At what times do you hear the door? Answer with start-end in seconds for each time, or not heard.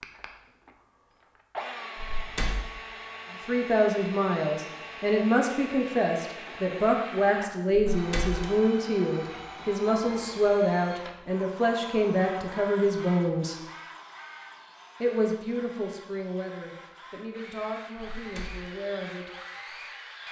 1.9-2.6, 7.9-8.4, 17.9-18.7.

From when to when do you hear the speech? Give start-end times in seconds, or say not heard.
3.5-13.6, 15.0-19.3.